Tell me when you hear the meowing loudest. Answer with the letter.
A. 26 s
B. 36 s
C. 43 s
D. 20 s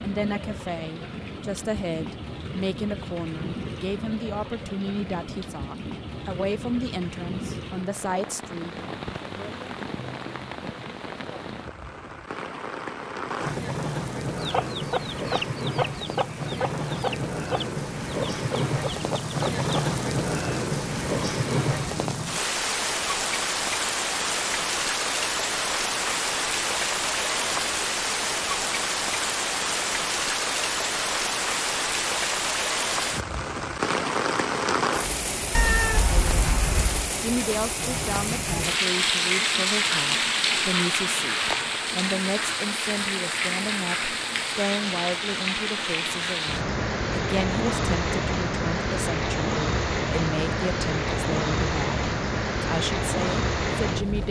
B.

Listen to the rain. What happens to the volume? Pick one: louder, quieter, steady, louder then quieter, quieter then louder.
louder.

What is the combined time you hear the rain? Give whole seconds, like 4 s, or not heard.
54 s.